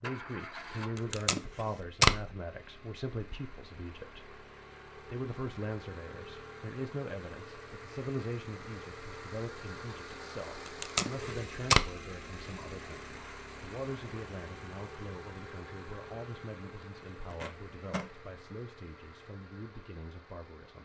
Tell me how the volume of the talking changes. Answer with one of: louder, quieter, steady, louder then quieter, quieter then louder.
quieter.